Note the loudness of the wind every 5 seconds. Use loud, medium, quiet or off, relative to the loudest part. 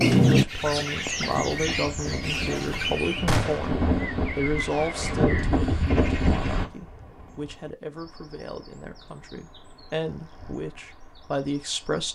medium, loud, off.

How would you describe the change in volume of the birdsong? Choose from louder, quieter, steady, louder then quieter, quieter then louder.
quieter.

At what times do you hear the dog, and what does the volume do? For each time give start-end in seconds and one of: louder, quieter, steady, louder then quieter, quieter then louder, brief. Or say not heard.
not heard.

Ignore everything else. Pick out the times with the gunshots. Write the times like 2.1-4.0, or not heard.
3.2-3.7.